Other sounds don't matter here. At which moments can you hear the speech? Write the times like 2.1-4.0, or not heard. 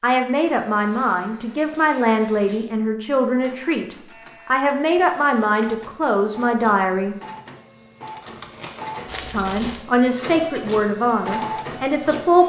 0.0-7.2, 9.2-12.4.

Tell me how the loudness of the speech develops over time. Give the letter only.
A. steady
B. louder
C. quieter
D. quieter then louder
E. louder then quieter
A.